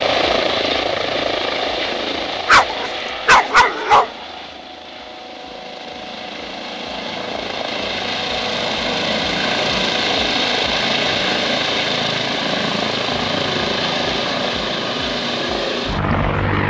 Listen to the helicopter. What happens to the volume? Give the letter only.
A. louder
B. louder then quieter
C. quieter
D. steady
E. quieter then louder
E.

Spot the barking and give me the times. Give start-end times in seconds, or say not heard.
2.5-4.1.